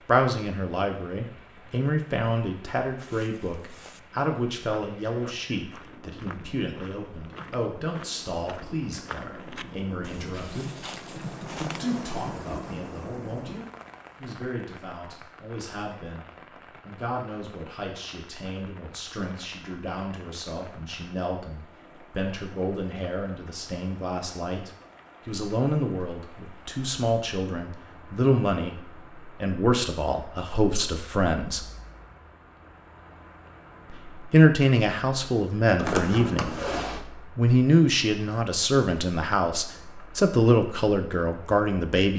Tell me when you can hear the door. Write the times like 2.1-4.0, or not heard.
35.8-37.0.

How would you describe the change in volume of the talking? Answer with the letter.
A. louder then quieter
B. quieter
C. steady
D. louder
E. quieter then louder
E.